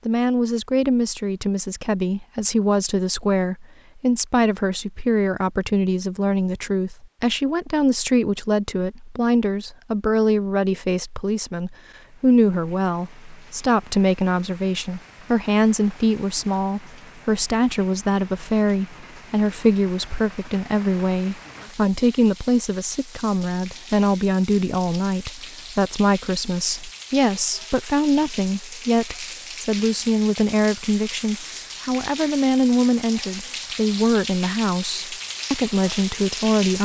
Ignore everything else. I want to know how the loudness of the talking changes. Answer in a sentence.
The volume of the talking stays about the same.